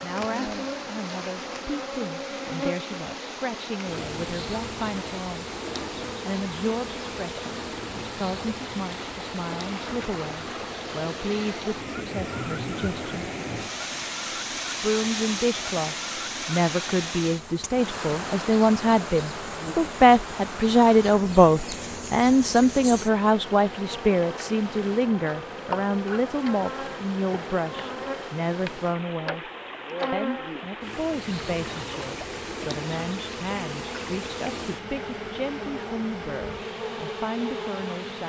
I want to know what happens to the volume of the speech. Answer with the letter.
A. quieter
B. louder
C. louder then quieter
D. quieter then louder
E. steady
C.